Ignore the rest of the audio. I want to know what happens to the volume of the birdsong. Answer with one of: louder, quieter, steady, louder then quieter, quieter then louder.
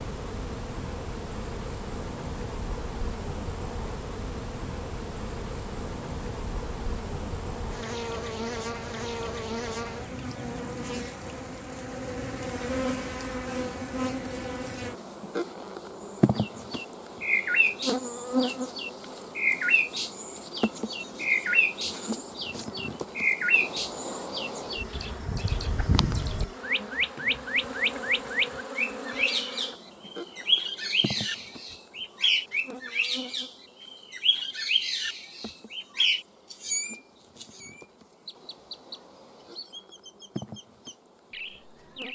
quieter.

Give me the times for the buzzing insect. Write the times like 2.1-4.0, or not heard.
0.0-42.1.